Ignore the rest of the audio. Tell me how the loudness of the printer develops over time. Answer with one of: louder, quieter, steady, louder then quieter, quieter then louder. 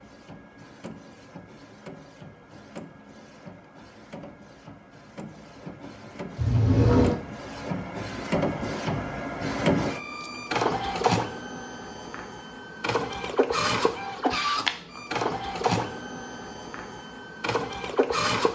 louder.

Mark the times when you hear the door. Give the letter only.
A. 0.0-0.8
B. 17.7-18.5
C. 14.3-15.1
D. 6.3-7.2
D.